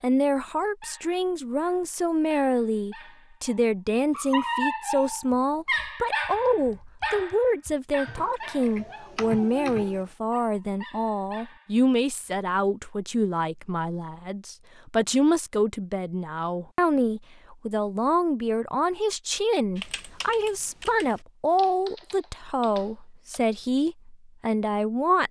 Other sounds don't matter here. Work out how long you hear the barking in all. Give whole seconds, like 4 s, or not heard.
11 s.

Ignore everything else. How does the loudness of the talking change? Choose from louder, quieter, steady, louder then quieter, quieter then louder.
steady.